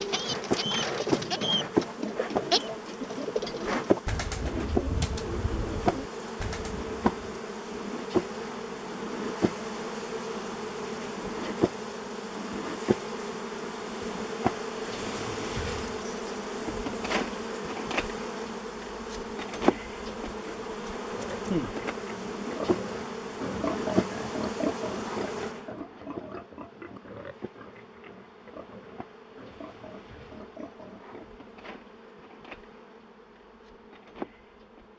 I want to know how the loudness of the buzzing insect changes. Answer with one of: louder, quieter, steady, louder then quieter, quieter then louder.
quieter.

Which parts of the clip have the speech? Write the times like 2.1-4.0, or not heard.
not heard.